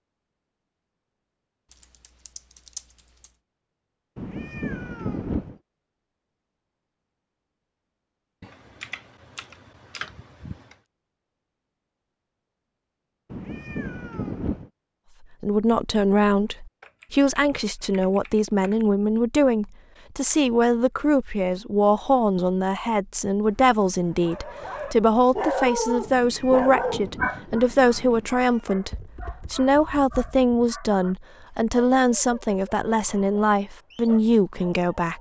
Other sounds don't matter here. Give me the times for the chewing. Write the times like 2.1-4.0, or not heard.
not heard.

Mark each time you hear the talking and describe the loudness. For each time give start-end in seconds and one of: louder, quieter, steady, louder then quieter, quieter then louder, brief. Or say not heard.
15.4-35.1 steady.